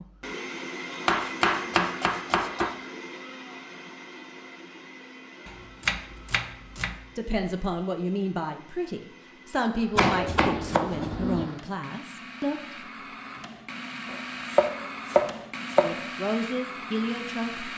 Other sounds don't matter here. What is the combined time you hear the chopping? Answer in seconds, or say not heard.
7 s.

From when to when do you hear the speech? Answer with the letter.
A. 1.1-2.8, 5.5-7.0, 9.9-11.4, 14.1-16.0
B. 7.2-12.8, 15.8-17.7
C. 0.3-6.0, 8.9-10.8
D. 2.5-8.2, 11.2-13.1
B.